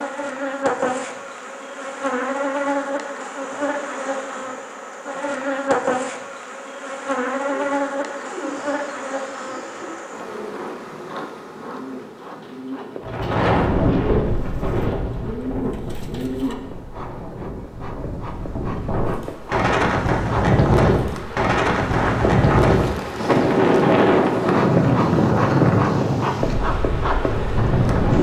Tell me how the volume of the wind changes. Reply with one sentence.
The loudness of the wind goes down, then up.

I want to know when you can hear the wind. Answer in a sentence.
You can hear the wind from 13.0 to 28.1 s.